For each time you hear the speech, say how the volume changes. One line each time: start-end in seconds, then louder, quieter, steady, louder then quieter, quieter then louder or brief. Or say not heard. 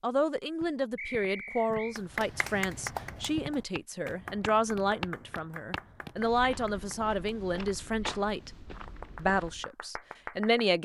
0.0-8.5 steady
9.2-10.8 brief.